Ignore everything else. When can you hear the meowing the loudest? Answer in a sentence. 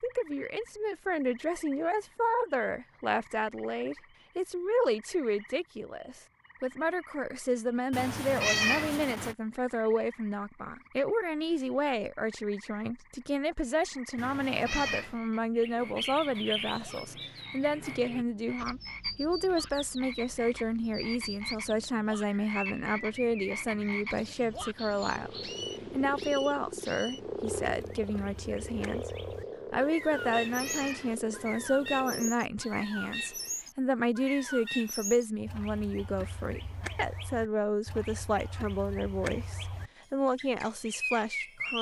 The loudest moment of the meowing is at 9 seconds.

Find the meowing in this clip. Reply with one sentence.
The meowing can be heard from 7.9 to 9.3 s, from 14.2 to 15.2 s and from 30.1 to 31.2 s.